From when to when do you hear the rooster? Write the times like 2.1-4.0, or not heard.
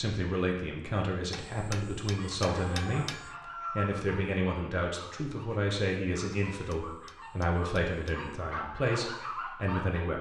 2.3-4.0.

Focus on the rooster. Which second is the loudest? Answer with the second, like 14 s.
4 s.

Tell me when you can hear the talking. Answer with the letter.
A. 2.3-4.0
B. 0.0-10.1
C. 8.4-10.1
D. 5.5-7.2
B.